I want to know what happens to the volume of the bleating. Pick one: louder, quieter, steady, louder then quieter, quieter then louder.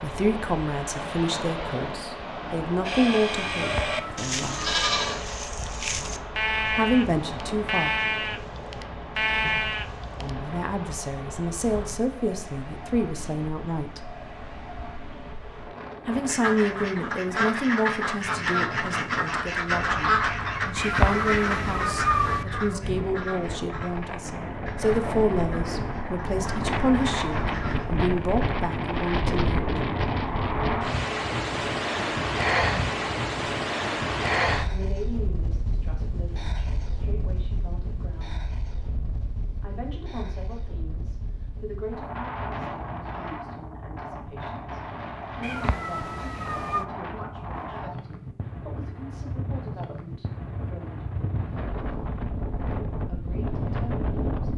steady.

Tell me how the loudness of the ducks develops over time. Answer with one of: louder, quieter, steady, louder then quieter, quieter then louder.
quieter.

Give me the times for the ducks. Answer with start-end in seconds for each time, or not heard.
16.2-27.9.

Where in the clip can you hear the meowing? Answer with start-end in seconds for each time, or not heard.
3.5-5.0, 20.8-22.4, 45.4-46.9.